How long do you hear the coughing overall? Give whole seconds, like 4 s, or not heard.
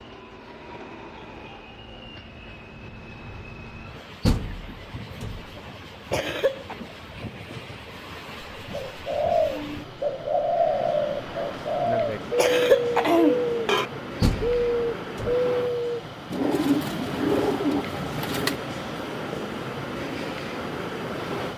2 s.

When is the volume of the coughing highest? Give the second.
13 s.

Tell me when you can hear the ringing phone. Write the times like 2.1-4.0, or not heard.
not heard.